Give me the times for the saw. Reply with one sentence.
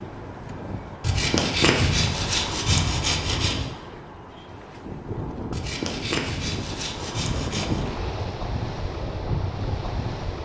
You can hear the saw from 1.0 to 3.6 s and from 5.5 to 7.8 s.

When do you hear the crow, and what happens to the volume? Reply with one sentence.
The crow can't be heard in this clip.